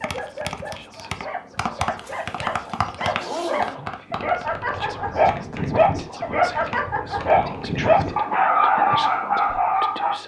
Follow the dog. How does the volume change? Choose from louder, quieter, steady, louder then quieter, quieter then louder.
louder.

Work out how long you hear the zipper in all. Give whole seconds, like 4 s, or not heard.
2 s.